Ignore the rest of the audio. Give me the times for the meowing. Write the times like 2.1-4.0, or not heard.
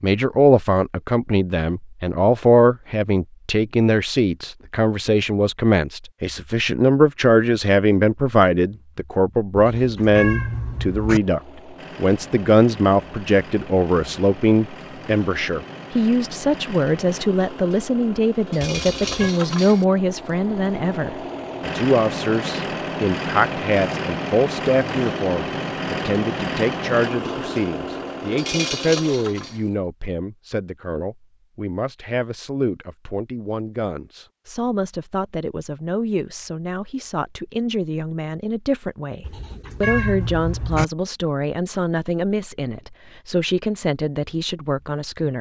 9.6-11.2, 18.9-19.4, 39.2-40.9.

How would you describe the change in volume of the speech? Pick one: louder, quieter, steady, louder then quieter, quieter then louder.
quieter.